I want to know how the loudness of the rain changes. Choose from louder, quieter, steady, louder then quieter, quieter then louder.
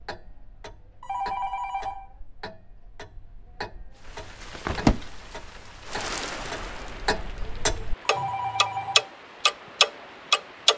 quieter.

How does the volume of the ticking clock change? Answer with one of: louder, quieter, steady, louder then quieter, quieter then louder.
louder.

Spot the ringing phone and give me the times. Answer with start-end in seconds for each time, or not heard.
1.0-2.1, 8.1-9.1.